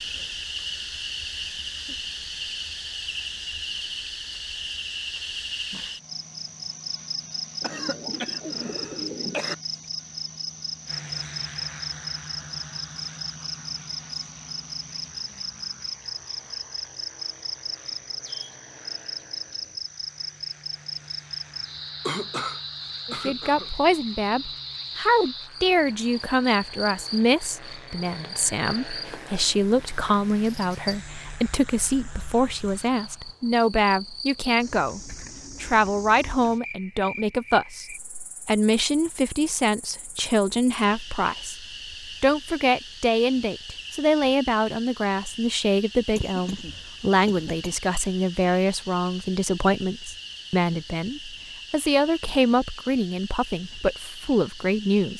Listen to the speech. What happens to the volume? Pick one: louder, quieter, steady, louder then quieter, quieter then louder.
steady.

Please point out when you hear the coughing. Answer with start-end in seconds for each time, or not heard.
7.6-9.6, 22.1-23.7, 46.0-47.7.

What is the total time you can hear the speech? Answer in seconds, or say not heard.
32 s.